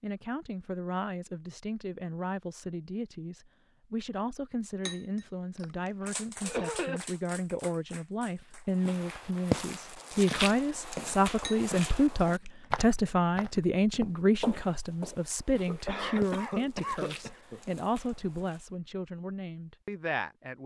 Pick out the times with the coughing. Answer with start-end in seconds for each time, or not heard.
6.0-7.0, 15.7-17.6.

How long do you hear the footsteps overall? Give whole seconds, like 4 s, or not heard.
10 s.